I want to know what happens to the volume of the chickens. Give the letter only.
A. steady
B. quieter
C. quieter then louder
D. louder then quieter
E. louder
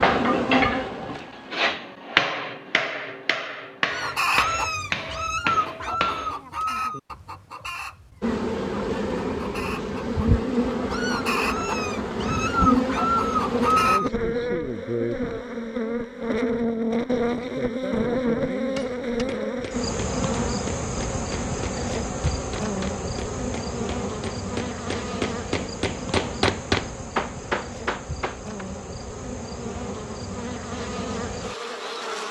C.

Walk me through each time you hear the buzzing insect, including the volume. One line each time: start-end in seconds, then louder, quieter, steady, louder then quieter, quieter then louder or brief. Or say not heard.
0.0-1.8 brief
8.2-32.2 quieter.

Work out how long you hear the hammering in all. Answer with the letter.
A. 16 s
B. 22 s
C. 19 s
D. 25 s
A.